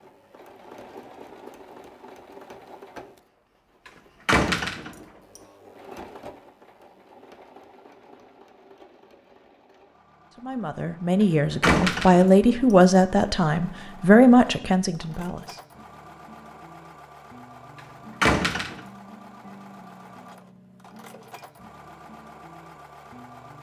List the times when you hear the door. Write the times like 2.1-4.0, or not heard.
4.2-5.0, 11.6-12.4, 18.2-18.8.